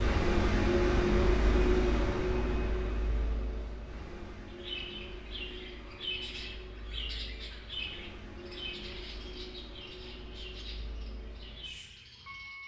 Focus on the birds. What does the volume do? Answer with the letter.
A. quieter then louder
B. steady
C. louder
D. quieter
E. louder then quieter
D.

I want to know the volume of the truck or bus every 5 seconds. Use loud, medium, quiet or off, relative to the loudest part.
loud, quiet, quiet.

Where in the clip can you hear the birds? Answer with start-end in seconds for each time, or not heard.
4.5-12.6.